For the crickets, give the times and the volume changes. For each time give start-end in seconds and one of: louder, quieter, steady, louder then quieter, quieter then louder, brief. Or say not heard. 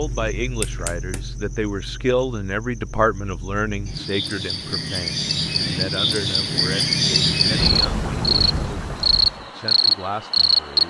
0.0-10.8 louder.